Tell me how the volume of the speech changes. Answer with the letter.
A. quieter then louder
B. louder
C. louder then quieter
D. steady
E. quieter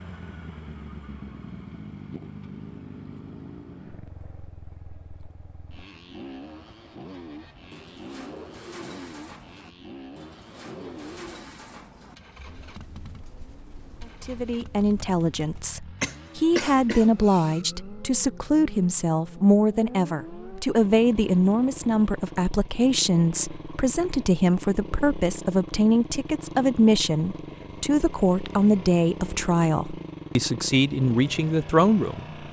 D.